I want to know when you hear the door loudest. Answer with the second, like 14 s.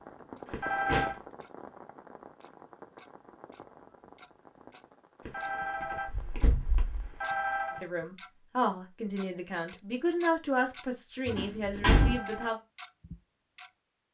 12 s.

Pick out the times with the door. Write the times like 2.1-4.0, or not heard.
0.5-1.1, 6.0-7.2, 11.2-12.2.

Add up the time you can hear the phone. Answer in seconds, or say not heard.
4 s.